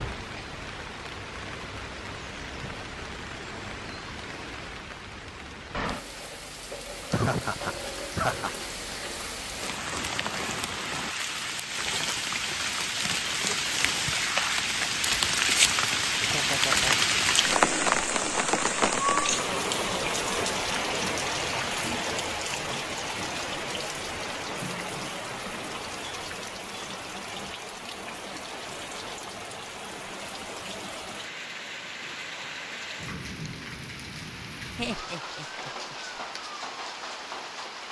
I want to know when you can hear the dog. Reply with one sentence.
The dog can't be heard in this clip.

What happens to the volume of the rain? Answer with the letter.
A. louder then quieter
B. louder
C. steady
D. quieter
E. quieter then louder
A.